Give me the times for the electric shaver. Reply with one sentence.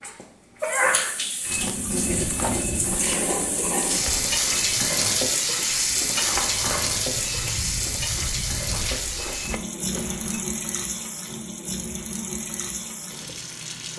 You can't hear the electric shaver here.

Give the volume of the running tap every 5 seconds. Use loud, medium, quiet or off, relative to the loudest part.
loud, loud, medium.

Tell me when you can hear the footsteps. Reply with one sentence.
You can hear the footsteps from 1.4 to 10.4 s.